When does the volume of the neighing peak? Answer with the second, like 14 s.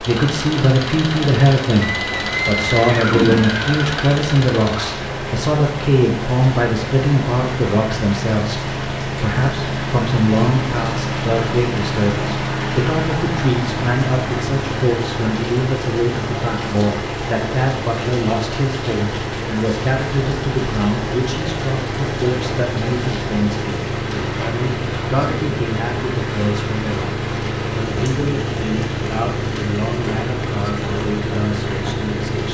3 s.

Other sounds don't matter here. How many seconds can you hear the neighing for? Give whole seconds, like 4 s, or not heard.
2 s.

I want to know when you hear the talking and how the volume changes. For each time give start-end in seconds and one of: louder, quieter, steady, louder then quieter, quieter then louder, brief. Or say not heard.
0.1-32.4 quieter.